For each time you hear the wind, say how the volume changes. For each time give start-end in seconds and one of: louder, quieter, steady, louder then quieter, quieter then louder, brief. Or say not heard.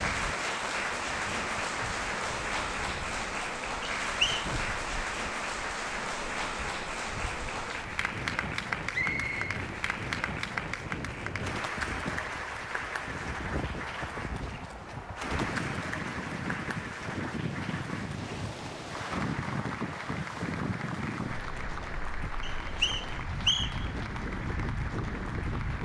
0.0-25.8 louder.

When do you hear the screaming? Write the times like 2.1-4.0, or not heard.
not heard.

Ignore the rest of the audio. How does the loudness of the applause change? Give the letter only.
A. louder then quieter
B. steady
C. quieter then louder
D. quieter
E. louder
D.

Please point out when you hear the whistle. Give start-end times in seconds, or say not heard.
3.8-4.5, 8.9-9.4, 22.4-23.9.